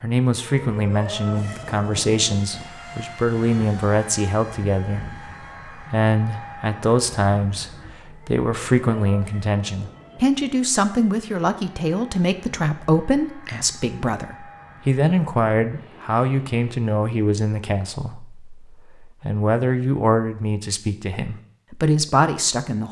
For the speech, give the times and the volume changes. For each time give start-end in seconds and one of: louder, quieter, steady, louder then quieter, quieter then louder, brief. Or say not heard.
0.0-22.8 steady.